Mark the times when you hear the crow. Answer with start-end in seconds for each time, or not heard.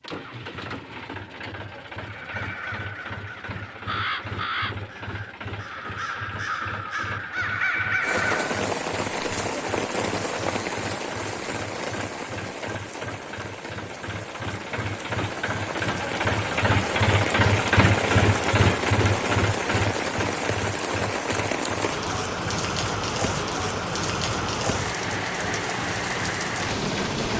2.0-8.6.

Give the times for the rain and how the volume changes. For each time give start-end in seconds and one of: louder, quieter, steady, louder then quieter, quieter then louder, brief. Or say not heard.
8.0-27.3 quieter then louder.